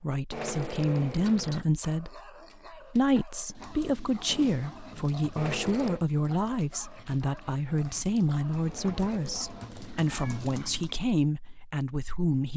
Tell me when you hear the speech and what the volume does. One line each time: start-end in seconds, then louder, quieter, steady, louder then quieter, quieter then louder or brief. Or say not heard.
0.0-12.5 steady.